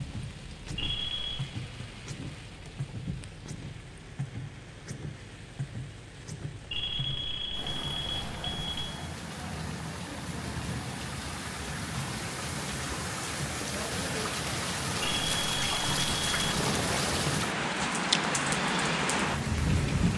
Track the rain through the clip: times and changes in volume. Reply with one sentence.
You can hear the rain from 0.0 to 20.1 s, getting louder.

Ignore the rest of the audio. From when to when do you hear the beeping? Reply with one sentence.
The beeping can be heard from 0.8 to 1.4 s, from 6.7 to 8.9 s and from 15.0 to 16.4 s.